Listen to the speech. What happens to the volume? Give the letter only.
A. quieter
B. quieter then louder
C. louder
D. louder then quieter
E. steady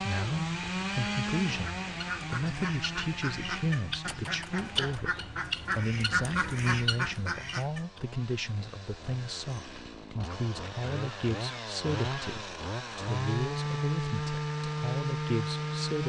E.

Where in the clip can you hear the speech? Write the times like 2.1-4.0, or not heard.
0.0-16.0.